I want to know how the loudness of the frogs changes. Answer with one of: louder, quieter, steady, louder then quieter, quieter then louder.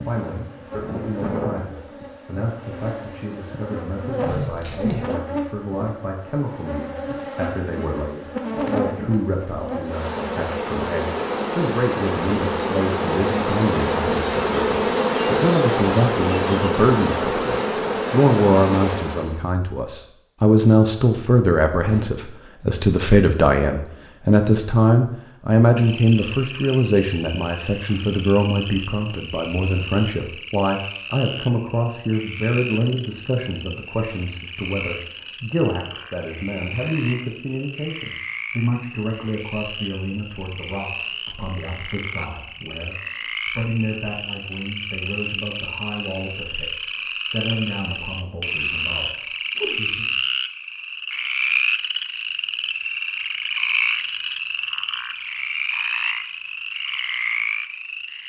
louder.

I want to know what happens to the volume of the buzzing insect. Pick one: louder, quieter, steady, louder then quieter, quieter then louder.
louder.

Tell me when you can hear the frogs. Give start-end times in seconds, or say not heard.
25.8-58.2.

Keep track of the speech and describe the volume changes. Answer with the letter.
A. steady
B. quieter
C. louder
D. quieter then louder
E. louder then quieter
E.